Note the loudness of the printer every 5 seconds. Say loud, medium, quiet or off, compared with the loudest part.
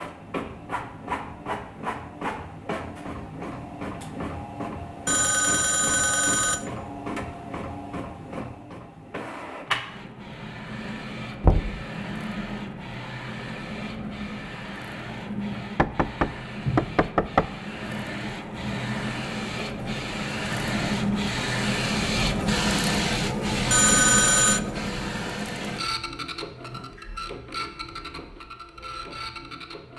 medium, medium, medium, medium, loud, medium.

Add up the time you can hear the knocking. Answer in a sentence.
You can hear the knocking for 2 seconds altogether.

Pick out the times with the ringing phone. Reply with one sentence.
The ringing phone can be heard from 5.0 to 6.7 s and from 23.7 to 24.6 s.